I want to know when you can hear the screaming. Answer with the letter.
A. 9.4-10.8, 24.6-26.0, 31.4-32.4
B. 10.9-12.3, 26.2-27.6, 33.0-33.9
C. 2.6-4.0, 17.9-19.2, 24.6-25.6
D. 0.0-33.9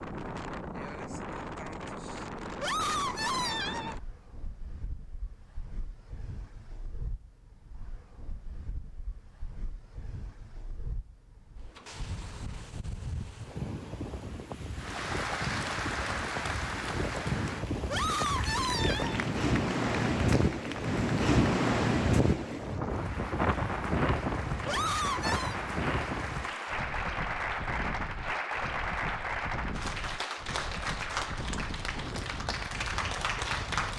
C.